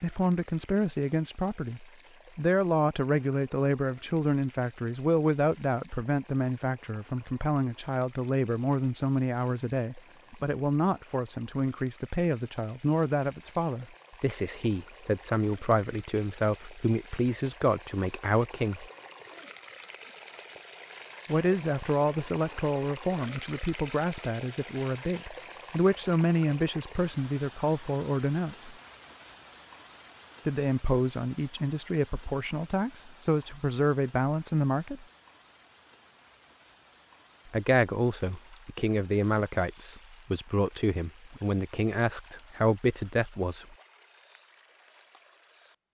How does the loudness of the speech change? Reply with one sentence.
The volume of the speech stays about the same.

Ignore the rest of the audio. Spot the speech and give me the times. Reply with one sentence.
You can hear the speech from 0.0 to 18.9 s, from 21.2 to 28.8 s, from 30.4 to 35.0 s and from 37.5 to 43.8 s.